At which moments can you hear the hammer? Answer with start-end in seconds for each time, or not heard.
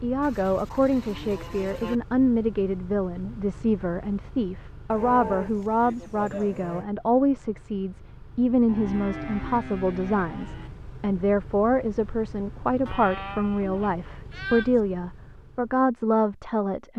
not heard.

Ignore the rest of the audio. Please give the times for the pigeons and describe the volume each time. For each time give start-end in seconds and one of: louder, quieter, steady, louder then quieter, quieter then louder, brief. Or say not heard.
not heard.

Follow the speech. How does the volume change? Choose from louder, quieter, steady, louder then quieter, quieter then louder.
steady.